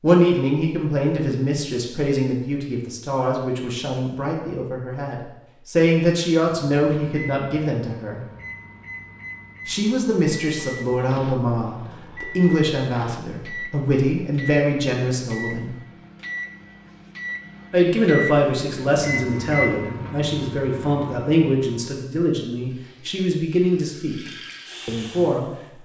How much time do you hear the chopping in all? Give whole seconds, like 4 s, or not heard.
not heard.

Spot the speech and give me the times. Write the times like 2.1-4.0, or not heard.
0.0-8.2, 9.7-15.8, 17.7-24.2, 24.9-25.8.